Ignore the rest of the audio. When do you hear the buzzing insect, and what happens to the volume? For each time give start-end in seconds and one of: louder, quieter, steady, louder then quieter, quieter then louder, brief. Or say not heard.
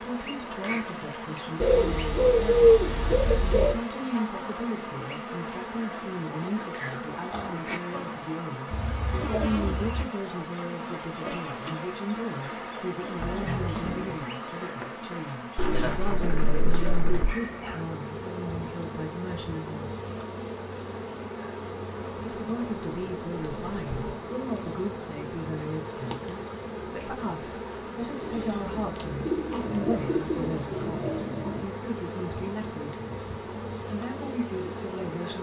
0.0-35.3 steady.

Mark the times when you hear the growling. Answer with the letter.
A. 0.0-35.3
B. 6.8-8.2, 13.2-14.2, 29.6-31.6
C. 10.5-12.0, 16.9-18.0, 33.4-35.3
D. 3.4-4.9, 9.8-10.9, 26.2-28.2
B.